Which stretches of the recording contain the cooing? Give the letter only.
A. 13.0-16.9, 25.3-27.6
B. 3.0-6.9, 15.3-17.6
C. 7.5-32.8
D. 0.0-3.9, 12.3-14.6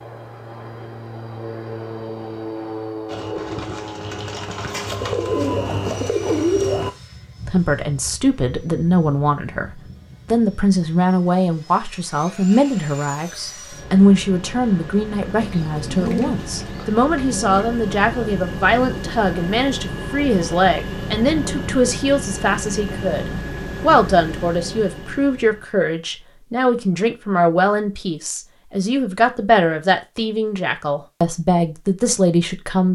B.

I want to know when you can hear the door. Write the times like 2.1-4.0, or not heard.
not heard.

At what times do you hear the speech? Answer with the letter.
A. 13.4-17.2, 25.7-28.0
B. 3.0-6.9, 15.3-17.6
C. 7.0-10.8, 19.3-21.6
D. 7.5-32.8
D.